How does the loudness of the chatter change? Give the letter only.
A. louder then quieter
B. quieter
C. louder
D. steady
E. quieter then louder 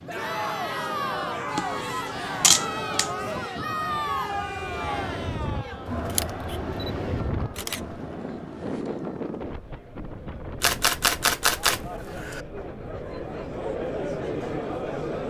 E.